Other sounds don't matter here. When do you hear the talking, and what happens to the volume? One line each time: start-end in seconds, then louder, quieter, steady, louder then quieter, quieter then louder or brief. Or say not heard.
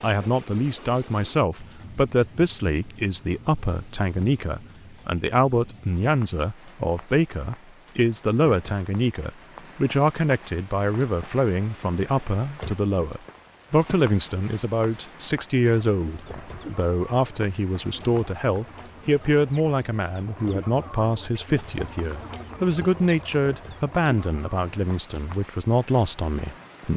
0.0-26.9 steady.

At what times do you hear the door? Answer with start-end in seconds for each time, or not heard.
not heard.